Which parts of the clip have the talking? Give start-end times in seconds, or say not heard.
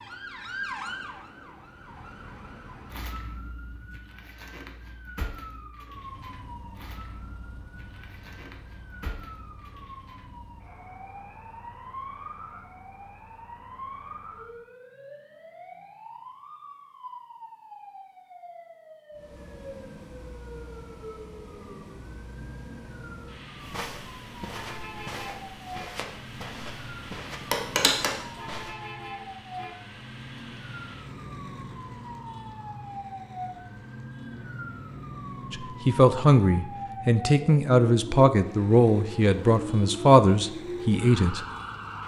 35.5-41.4.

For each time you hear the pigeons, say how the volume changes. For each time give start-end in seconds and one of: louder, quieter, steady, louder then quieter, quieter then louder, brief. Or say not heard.
not heard.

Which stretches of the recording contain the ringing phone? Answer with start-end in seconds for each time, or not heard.
27.5-28.1.